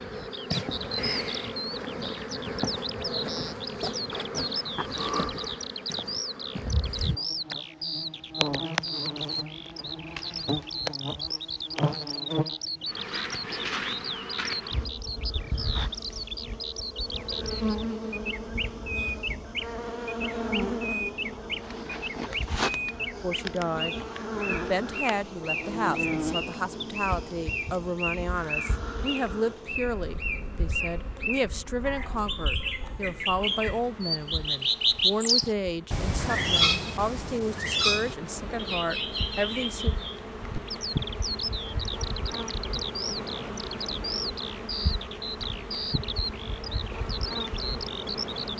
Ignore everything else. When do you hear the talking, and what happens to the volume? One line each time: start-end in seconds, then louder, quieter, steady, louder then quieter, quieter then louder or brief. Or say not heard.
23.2-40.0 steady.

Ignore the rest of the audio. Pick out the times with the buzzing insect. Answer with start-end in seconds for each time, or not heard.
0.0-48.5.